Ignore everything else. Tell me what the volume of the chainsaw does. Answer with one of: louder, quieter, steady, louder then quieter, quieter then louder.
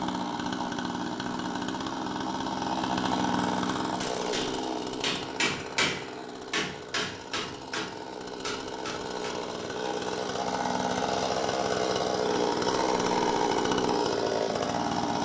quieter then louder.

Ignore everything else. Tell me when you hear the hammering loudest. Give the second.
6 s.